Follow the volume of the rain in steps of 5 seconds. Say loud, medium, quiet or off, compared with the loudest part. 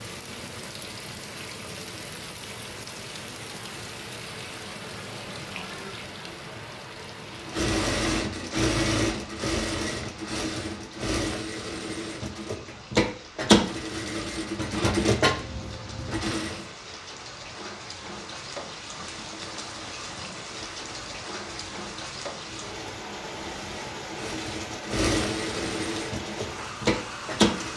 loud, loud, medium, loud, loud, loud.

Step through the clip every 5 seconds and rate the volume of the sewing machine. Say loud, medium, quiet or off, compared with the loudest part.
off, loud, loud, loud, quiet, loud.